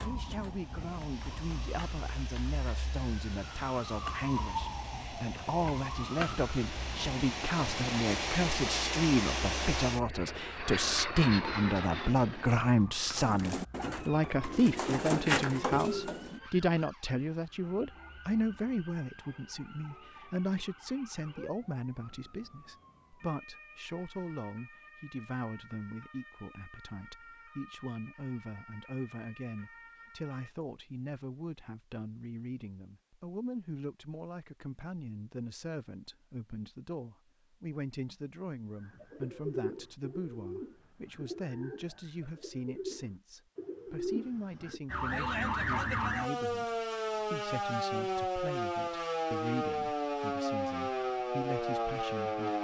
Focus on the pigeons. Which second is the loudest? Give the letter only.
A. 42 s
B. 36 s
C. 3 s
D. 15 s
D.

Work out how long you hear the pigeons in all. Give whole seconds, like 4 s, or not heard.
9 s.